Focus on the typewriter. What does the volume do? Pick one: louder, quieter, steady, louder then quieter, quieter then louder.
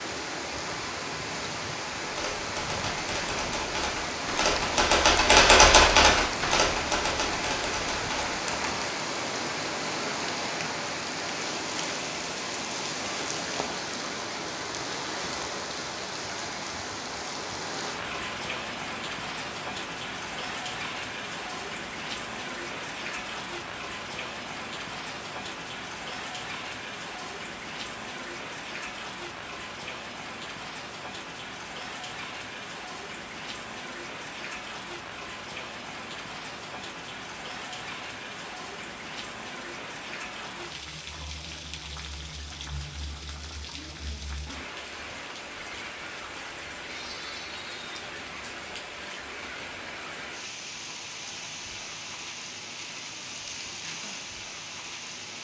louder then quieter.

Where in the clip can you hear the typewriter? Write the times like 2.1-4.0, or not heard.
2.0-9.0.